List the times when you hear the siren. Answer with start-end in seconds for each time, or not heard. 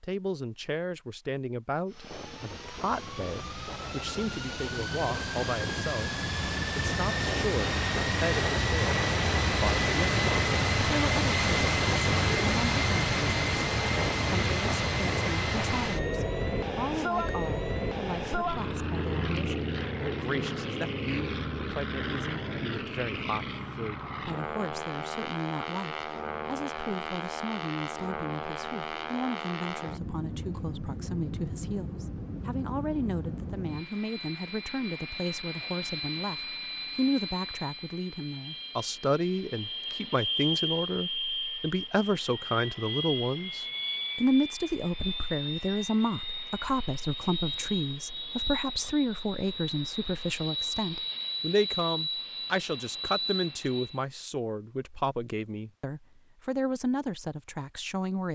not heard.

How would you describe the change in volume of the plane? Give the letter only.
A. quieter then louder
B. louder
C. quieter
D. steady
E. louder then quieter
C.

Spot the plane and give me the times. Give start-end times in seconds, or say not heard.
1.9-54.0.